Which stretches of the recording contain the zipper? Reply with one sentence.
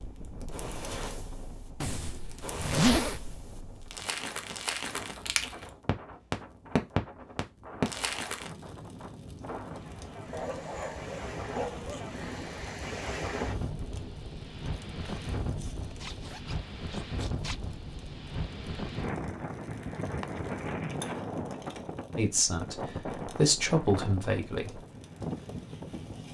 You can hear the zipper from 1.8 to 3.4 s and from 15.9 to 17.6 s.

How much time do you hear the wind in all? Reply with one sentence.
The wind can be heard for 26 seconds in total.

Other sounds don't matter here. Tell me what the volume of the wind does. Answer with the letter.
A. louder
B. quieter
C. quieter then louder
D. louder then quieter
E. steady
A.